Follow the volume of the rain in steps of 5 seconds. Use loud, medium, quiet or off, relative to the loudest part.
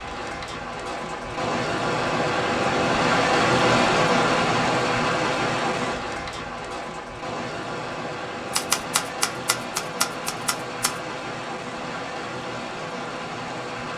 loud, medium, medium.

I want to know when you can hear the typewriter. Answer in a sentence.
The typewriter can be heard from 8.5 to 10.9 s.